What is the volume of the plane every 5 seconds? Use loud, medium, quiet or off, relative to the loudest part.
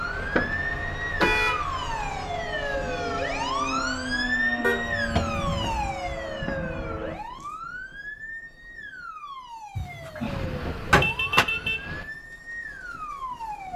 loud, loud, off.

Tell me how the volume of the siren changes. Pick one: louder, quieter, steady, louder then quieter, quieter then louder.
quieter.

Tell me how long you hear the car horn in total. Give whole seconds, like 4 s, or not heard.
3 s.